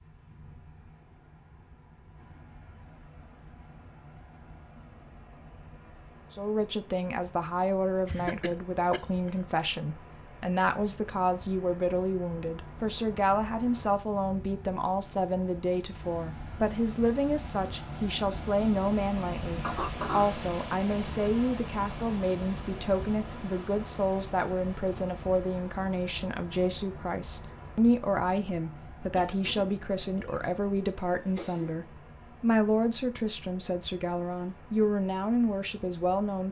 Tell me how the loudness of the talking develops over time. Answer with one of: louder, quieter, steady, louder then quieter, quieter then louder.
steady.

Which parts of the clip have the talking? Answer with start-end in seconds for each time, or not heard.
6.3-36.4.